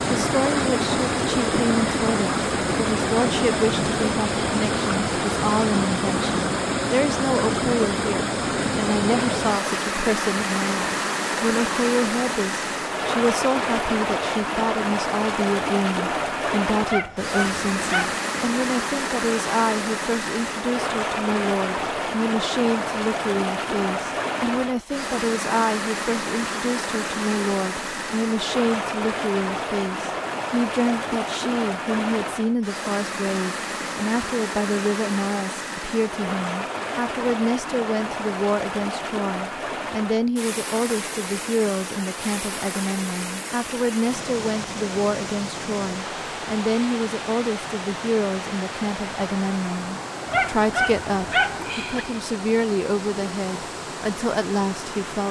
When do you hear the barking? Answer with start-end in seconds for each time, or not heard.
16.9-18.2, 50.2-52.0.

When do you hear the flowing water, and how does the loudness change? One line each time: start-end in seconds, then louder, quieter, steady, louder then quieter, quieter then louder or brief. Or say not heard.
0.0-55.2 quieter.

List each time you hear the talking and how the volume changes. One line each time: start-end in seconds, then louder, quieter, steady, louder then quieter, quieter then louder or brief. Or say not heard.
0.1-55.2 steady.